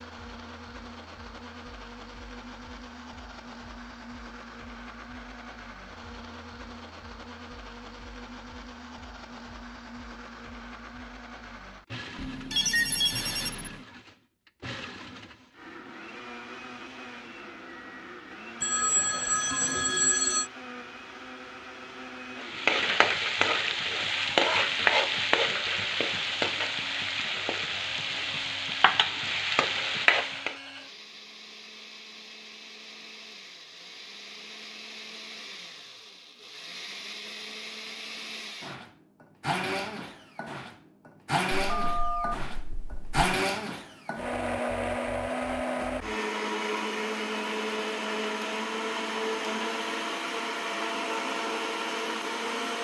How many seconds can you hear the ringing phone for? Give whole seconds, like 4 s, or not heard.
5 s.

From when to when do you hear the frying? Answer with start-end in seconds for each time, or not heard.
22.4-30.6.